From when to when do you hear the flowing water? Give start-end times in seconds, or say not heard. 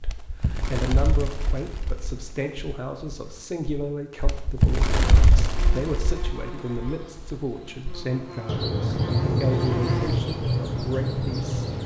not heard.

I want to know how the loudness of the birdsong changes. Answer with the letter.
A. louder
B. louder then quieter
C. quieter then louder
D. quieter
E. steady
A.